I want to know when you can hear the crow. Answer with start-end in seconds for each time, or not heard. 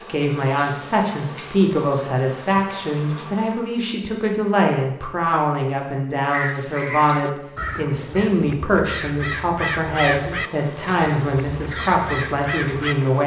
6.3-12.9.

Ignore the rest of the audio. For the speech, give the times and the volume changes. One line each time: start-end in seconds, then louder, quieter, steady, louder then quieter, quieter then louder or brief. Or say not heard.
0.0-13.2 steady.